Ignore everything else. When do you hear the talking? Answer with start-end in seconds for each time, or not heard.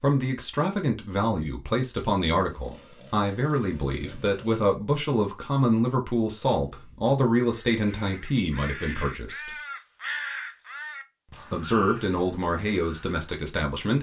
0.0-9.5, 11.5-13.9.